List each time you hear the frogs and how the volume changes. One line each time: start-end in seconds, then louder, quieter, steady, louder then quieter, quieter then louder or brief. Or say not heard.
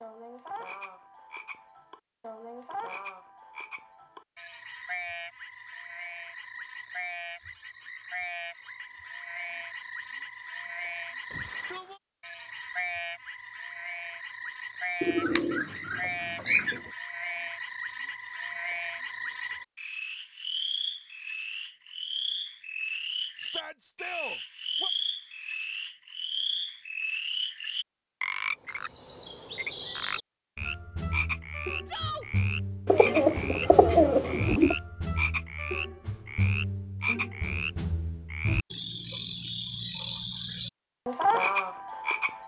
0.0-42.4 louder.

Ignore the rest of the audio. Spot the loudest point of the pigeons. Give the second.
34 s.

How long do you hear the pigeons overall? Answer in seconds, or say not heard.
4 s.